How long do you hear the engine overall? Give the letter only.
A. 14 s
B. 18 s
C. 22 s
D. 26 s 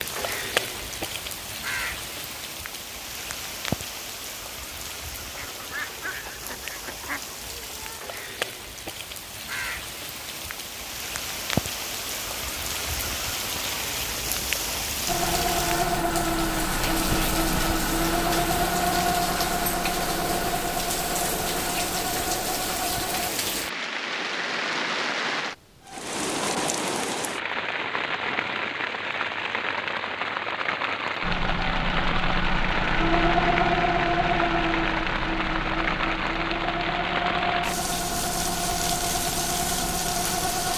B.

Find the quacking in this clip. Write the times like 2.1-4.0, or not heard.
5.3-7.3.